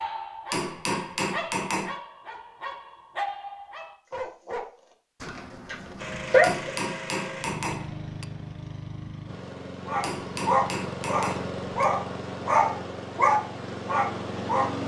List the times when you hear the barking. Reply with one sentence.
The barking can be heard from 0.0 to 6.7 s and from 9.8 to 14.8 s.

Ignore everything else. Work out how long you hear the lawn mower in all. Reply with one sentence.
The lawn mower can be heard for 9 seconds in total.